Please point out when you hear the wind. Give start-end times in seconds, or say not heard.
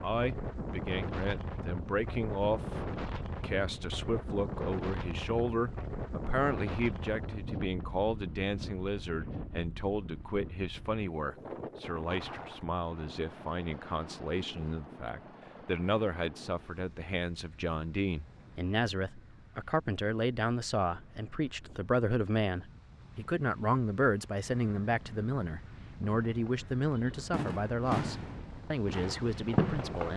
0.0-30.1.